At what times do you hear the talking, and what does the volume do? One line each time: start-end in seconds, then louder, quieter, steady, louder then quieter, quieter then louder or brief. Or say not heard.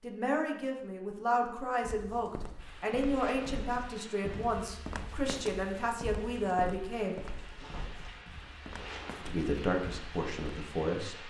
0.0-7.2 steady
9.2-11.2 brief.